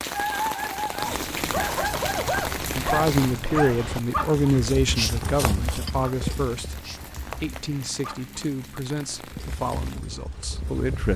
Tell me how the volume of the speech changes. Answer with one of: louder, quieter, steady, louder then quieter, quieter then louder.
quieter.